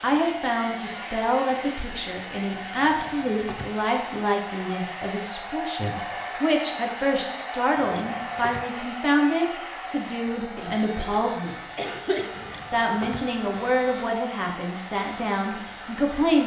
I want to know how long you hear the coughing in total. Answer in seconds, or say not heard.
2 s.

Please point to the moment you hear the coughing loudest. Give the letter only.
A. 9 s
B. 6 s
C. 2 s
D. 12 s
D.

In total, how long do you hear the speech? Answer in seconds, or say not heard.
15 s.